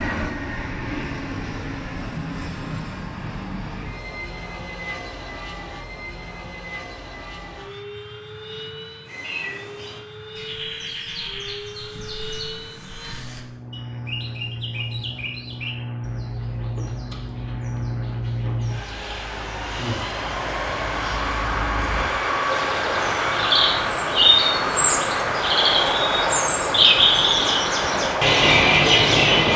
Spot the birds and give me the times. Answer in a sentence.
The birds can be heard from 9.1 to 29.5 s.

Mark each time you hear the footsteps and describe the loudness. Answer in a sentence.
The footsteps can't be heard in this clip.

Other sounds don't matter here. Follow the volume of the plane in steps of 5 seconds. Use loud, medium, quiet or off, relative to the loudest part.
medium, quiet, quiet, medium, loud, loud.